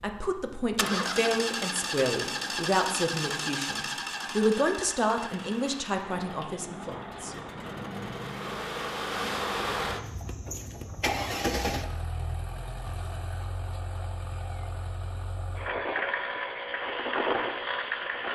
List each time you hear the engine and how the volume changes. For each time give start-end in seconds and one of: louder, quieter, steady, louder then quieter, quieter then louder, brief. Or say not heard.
0.0-18.2 quieter then louder.